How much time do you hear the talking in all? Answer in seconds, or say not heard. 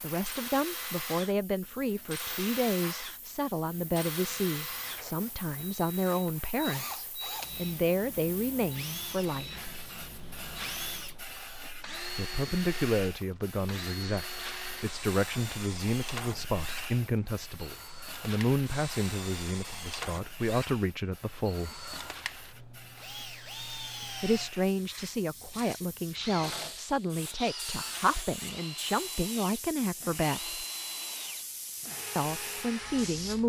27 s.